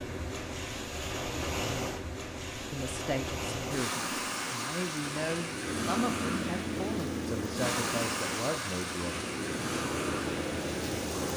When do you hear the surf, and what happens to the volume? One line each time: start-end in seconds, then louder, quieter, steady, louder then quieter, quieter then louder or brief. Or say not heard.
0.0-11.3 steady.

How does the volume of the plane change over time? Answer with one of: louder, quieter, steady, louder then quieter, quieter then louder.
quieter then louder.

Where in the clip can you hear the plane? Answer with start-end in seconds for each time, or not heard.
5.7-11.3.